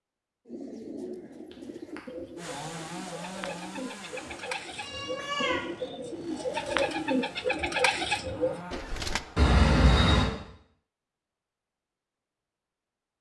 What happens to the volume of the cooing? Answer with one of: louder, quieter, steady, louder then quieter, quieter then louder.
louder.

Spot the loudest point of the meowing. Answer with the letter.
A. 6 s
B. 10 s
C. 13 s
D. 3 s
B.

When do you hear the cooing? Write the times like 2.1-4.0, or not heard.
0.5-9.2.